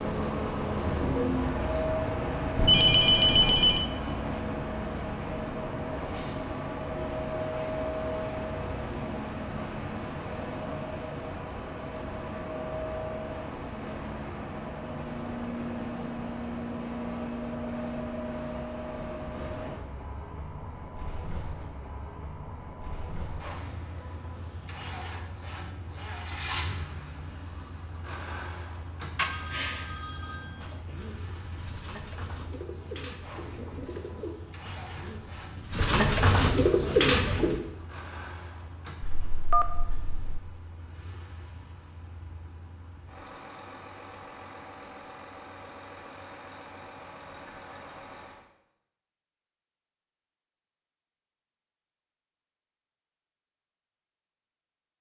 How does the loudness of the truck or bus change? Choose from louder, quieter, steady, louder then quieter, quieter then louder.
quieter.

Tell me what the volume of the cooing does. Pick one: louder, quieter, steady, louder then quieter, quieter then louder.
louder.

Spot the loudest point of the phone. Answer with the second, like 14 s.
3 s.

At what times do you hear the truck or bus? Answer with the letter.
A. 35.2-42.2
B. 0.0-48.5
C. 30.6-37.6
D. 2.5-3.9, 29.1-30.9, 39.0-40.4
B.